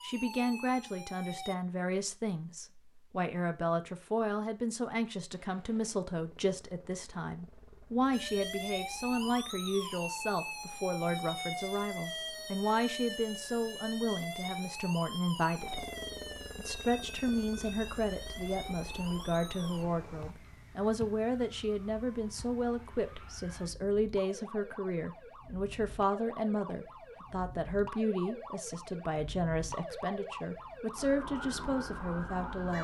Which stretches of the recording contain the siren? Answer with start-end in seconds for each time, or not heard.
0.0-1.6, 8.1-32.7.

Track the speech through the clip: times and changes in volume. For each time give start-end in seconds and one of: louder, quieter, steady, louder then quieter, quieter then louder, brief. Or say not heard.
0.0-15.8 steady
16.6-32.7 steady.